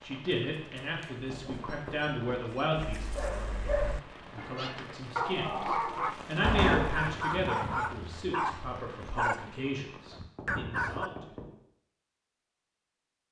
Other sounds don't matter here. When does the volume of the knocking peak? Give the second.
7 s.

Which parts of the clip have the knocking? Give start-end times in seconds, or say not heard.
0.3-2.4, 6.4-7.0, 10.3-11.5.